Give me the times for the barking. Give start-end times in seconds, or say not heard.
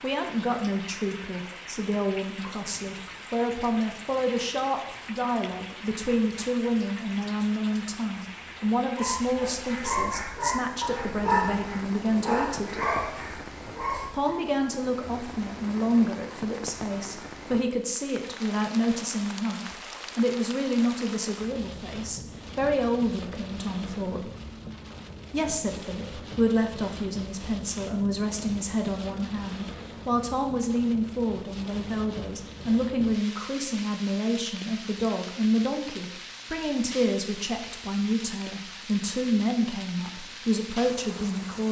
8.9-14.3.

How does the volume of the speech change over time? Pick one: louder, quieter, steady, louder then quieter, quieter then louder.
steady.